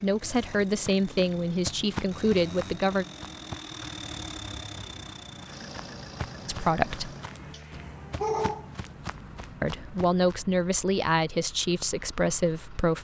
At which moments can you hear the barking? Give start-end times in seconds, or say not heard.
7.5-8.7.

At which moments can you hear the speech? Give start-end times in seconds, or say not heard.
0.0-3.0, 6.5-7.2, 9.6-12.9.